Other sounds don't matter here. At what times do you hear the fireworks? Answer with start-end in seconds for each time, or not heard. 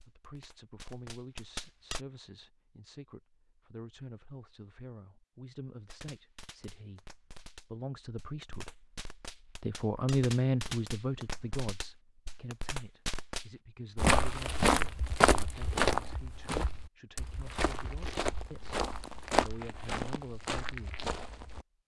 0.0-2.0, 5.9-13.5.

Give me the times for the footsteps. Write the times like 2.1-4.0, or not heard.
13.9-21.6.